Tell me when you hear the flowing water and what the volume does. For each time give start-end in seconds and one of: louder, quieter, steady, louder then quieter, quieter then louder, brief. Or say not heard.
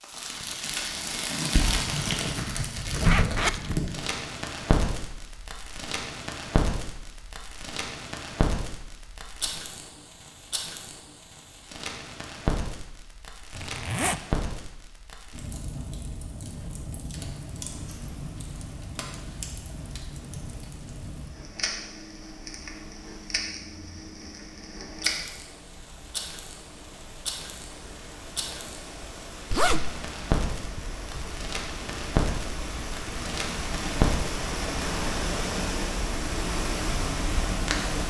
17.2-38.0 louder.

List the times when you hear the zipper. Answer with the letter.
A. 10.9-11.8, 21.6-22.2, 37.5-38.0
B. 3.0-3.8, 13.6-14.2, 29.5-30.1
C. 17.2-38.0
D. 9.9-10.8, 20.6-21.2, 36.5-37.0
B.